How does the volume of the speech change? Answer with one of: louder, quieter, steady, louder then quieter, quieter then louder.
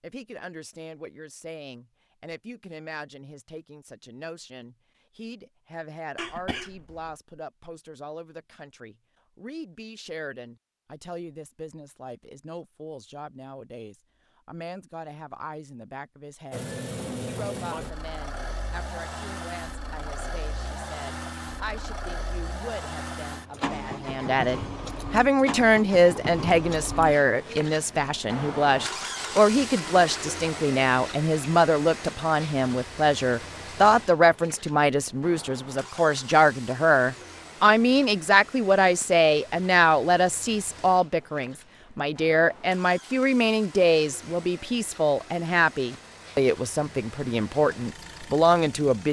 louder.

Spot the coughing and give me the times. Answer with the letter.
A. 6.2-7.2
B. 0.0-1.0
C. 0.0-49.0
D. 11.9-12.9
A.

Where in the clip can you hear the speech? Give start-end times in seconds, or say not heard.
0.0-49.0.